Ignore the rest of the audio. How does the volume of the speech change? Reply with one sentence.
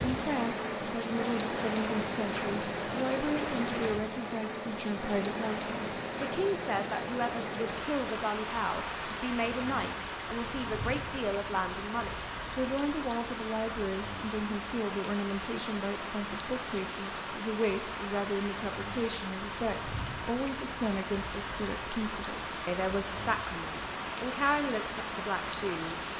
The volume of the speech stays about the same.